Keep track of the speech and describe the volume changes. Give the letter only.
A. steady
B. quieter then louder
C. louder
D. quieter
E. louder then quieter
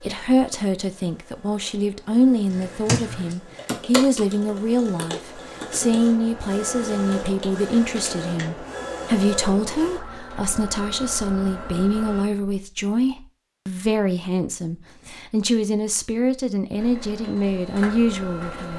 A.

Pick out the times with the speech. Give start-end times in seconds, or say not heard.
0.0-18.7.